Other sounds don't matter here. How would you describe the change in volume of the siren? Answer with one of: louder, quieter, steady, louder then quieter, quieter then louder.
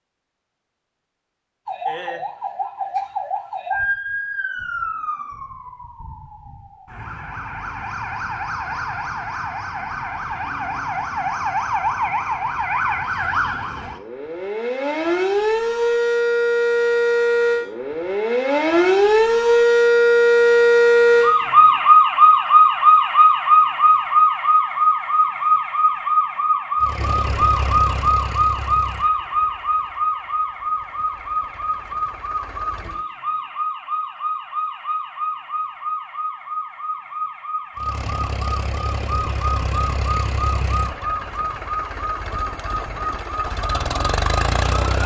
louder then quieter.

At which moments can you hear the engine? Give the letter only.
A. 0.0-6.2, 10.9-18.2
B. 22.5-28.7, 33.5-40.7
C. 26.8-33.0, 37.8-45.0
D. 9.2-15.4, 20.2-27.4
C.